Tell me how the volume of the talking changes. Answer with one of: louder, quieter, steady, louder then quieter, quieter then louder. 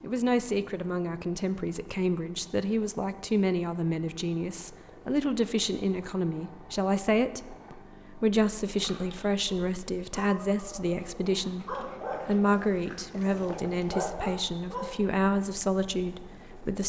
steady.